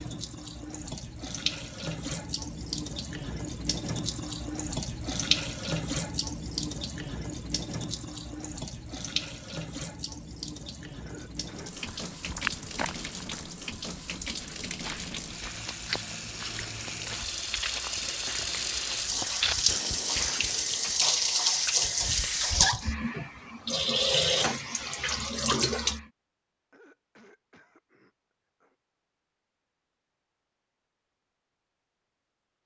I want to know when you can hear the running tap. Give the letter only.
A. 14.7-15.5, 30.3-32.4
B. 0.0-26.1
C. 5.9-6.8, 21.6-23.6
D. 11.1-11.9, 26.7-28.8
B.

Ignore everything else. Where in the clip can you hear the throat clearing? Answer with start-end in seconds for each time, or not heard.
11.1-11.9, 26.7-28.8.